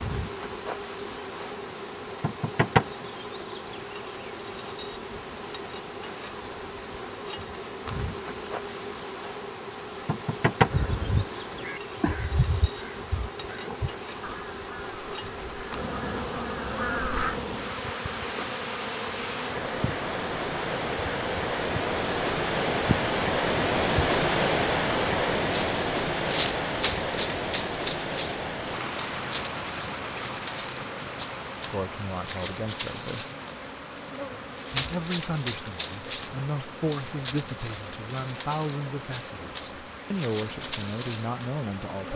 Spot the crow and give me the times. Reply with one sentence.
You can hear the crow from 10.7 to 17.4 s.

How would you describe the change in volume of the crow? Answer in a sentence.
The volume of the crow goes down, then up.